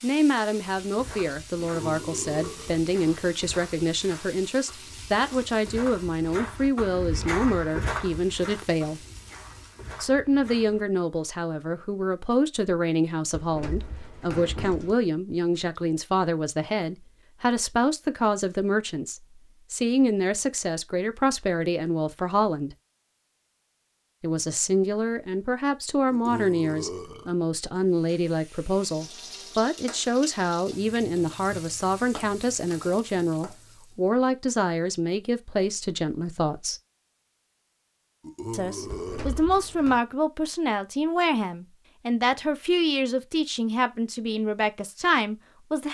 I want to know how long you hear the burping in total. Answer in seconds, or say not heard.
4 s.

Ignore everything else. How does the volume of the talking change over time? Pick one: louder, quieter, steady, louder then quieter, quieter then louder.
steady.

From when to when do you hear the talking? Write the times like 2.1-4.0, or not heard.
0.0-9.1, 10.0-22.8, 24.2-36.8, 38.5-45.8.